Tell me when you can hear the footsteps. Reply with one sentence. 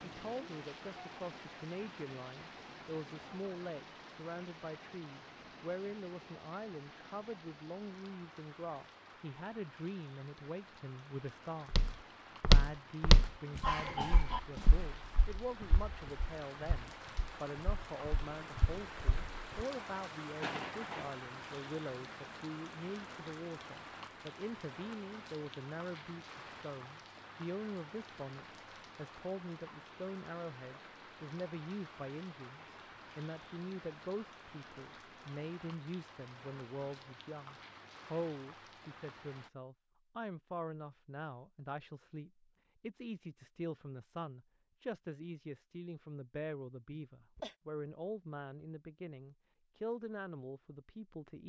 The footsteps can be heard from 11.7 to 19.6 s.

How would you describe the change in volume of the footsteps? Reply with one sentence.
The volume of the footsteps goes down, then up.